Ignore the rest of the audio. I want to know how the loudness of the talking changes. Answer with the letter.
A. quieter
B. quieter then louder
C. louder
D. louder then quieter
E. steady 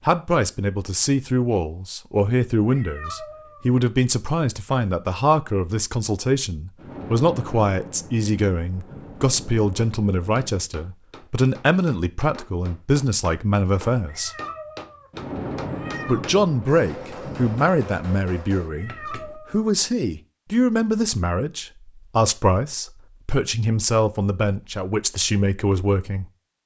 E.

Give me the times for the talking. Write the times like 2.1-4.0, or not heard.
0.1-14.3, 16.1-26.2.